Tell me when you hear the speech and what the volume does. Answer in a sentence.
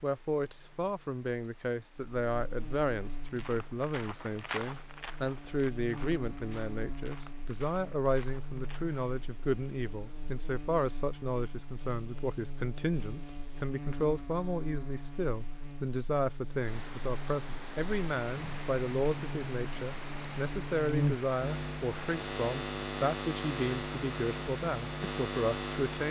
You can hear the speech from 0.0 to 26.0 s, at a steady volume.